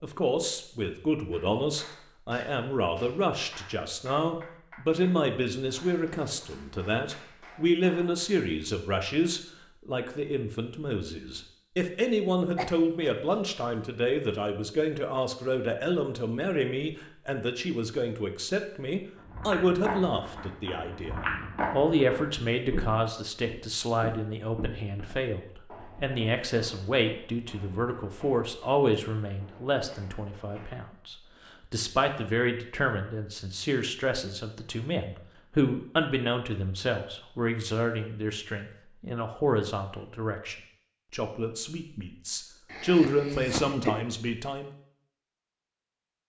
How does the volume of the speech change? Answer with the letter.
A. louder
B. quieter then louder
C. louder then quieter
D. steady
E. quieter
D.